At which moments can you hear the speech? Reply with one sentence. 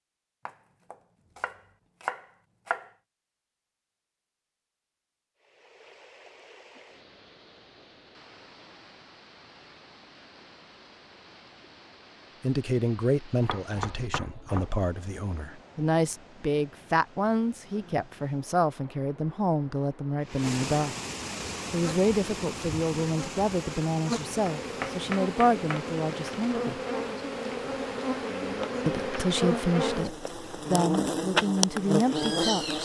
You can hear the speech from 12.4 to 20.9 s, from 21.7 to 26.8 s and from 28.9 to 32.8 s.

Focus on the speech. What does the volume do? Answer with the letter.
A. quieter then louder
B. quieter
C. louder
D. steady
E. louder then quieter
D.